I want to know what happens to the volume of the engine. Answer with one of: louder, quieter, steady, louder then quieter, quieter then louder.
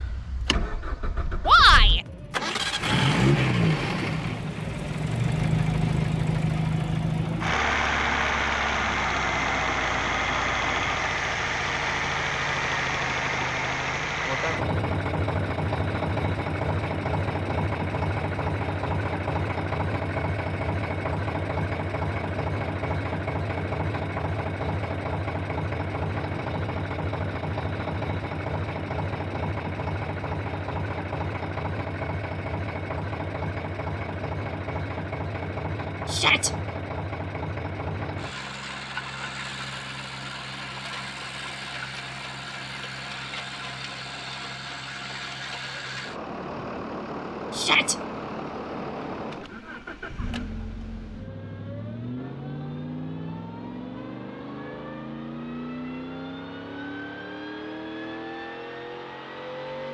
quieter.